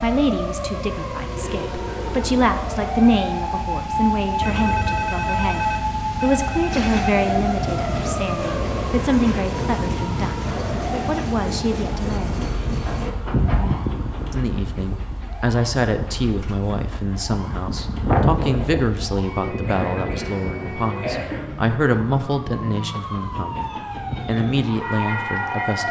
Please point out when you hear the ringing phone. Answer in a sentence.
You can hear the ringing phone from 4.4 to 7.0 s.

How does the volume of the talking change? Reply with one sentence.
The volume of the talking stays about the same.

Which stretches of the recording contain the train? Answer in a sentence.
You can hear the train from 6.7 to 25.8 s.